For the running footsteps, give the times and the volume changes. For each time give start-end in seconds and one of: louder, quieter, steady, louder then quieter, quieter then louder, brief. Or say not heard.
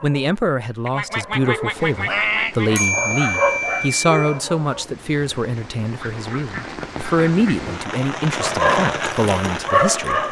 not heard.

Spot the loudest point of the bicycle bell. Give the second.
3 s.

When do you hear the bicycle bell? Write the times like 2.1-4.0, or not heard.
2.8-4.4.